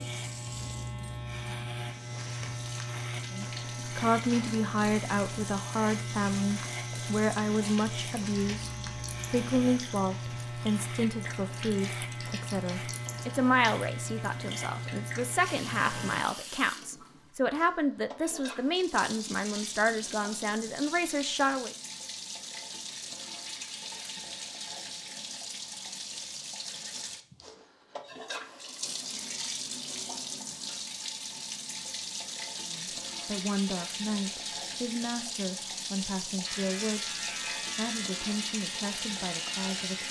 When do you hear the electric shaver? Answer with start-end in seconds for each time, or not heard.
0.0-16.2, 36.5-40.0.